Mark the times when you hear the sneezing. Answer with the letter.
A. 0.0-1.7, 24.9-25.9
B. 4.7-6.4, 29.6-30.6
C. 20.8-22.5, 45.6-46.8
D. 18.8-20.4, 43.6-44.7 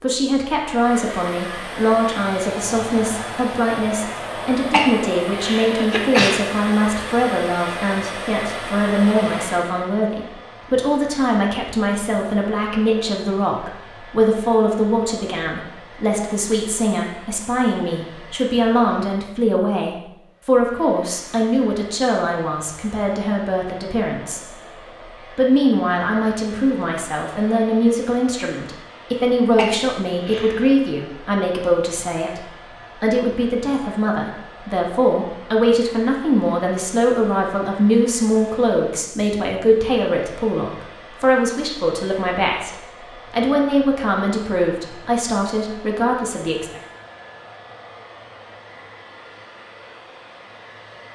B.